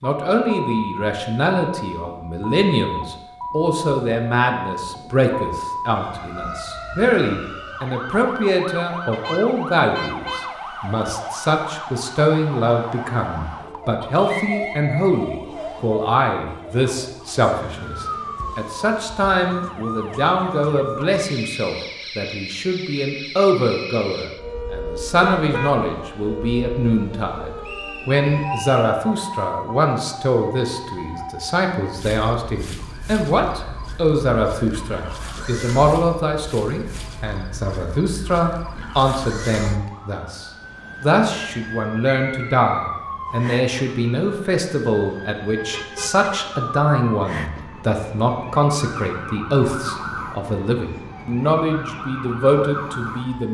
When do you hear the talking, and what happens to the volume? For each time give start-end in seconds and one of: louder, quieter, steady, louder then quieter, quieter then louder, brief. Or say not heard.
0.0-53.5 steady.